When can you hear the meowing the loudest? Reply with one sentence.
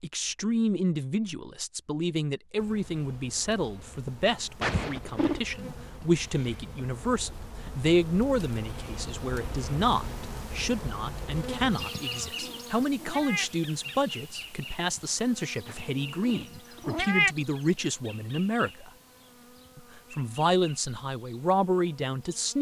The volume of the meowing peaks at 17 seconds.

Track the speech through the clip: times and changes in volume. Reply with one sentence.
The speech can be heard from 0.0 to 18.9 s, at a steady volume; and briefly from 19.8 to 22.5 s.